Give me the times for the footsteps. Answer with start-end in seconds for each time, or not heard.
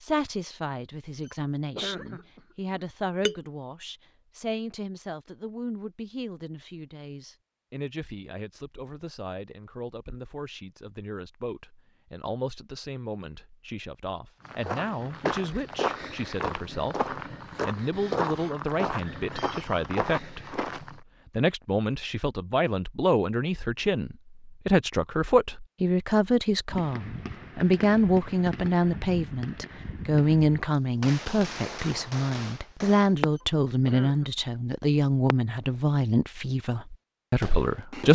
14.4-21.0.